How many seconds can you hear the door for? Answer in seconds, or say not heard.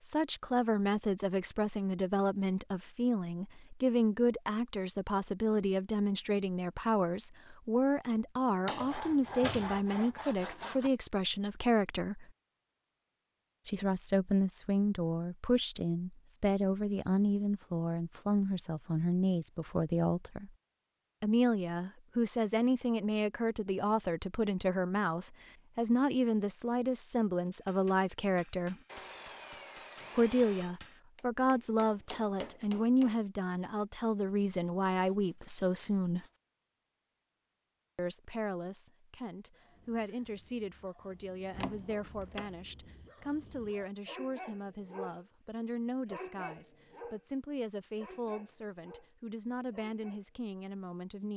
2 s.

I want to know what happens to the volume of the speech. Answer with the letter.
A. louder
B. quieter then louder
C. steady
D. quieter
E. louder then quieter
D.